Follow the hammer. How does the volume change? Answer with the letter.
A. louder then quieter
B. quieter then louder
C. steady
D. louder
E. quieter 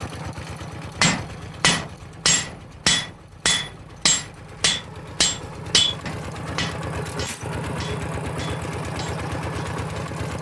E.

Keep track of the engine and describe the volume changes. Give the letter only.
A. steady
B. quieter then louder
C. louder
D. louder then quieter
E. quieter
B.